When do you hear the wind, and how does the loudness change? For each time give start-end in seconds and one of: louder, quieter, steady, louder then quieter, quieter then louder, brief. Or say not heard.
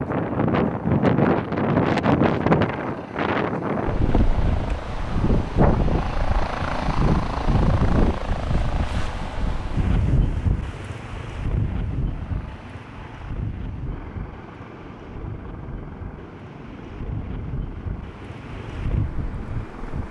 0.0-20.0 quieter.